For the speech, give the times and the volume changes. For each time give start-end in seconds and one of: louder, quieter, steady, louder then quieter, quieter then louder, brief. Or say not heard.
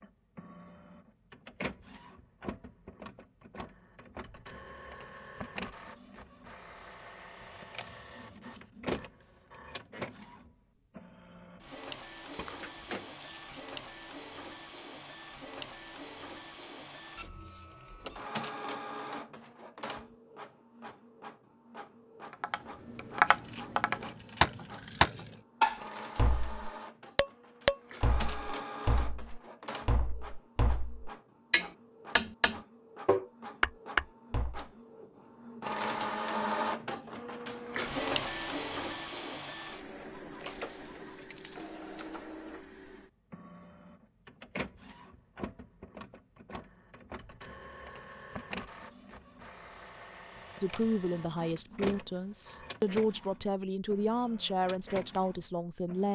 50.6-56.0 steady.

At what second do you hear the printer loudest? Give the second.
36 s.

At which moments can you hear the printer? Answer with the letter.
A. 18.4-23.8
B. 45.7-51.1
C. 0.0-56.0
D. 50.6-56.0
C.